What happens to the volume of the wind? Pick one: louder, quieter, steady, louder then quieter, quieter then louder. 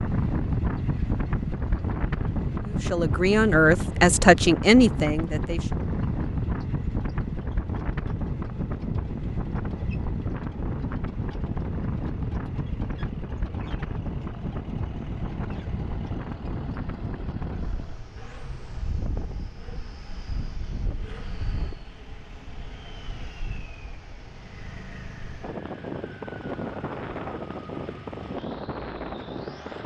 quieter then louder.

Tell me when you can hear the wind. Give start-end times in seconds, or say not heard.
0.0-29.8.